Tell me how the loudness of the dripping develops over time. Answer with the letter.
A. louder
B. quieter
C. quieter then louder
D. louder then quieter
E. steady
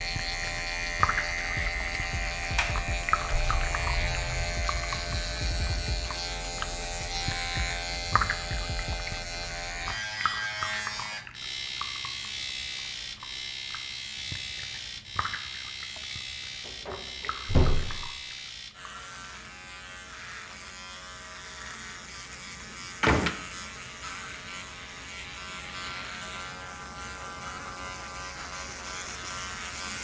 B.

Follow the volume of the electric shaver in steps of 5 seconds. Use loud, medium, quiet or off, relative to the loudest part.
loud, loud, loud, medium, medium, medium.